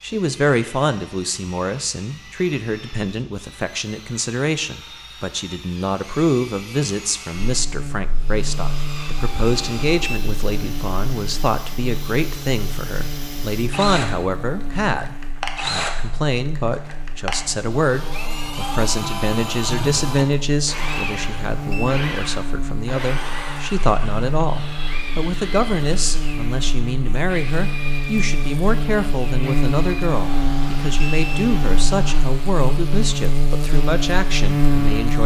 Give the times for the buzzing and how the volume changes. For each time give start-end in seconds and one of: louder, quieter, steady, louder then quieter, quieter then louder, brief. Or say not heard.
7.3-35.2 louder.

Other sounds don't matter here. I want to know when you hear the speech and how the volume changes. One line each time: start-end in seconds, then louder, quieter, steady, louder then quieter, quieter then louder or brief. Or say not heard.
0.0-35.2 steady.